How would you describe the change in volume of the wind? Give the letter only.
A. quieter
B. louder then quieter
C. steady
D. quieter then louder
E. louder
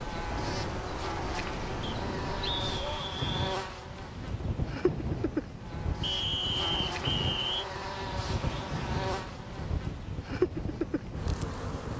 C.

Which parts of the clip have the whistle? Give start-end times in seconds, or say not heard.
1.8-3.5, 6.0-7.7.